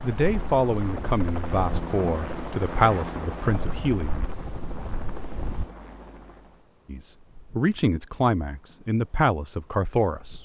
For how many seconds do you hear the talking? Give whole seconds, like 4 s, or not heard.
8 s.